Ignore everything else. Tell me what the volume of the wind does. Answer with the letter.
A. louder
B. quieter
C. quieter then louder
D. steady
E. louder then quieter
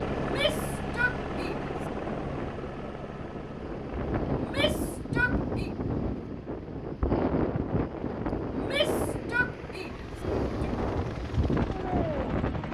A.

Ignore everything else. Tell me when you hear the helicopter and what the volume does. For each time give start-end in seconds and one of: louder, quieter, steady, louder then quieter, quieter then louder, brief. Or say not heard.
0.0-12.7 quieter then louder.